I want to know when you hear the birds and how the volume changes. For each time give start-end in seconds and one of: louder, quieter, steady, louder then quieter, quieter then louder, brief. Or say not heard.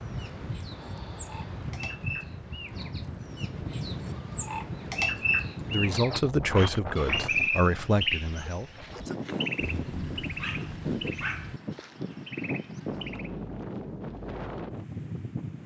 0.0-13.3 louder then quieter.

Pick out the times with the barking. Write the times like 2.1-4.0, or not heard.
9.6-11.6.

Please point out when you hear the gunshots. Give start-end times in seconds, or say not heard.
not heard.